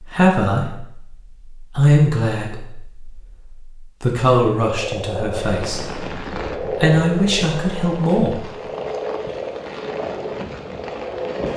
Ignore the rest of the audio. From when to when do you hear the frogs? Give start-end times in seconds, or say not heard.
4.7-11.5.